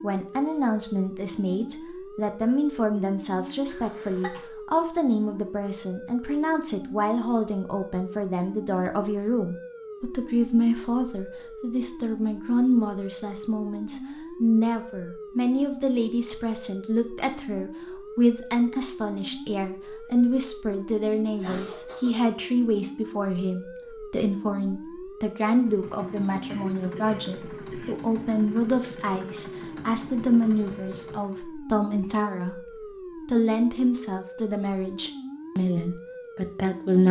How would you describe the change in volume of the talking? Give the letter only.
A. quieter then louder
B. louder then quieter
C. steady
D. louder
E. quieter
C.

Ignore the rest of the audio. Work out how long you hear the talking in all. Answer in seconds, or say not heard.
36 s.